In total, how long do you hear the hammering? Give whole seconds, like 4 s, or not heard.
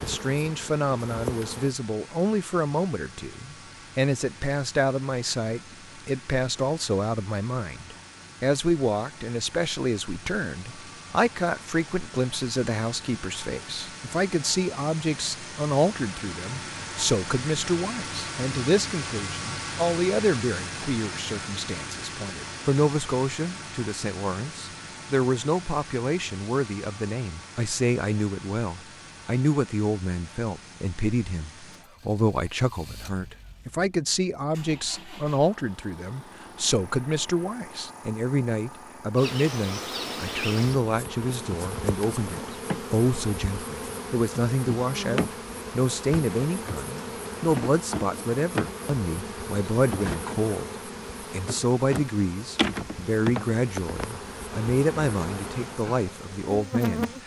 not heard.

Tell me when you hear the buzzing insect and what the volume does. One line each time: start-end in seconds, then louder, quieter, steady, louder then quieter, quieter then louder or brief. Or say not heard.
0.0-1.8 brief
39.1-57.2 steady.